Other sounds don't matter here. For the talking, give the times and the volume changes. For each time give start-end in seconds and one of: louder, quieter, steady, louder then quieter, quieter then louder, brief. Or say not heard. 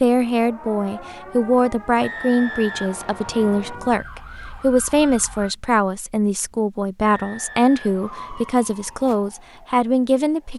0.0-10.5 steady.